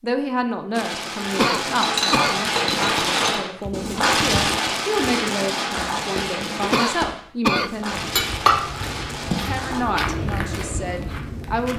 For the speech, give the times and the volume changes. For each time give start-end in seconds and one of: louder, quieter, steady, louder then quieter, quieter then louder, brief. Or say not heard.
0.0-8.2 quieter then louder
9.4-11.7 brief.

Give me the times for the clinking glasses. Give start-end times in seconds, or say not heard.
1.8-4.1, 8.2-9.6.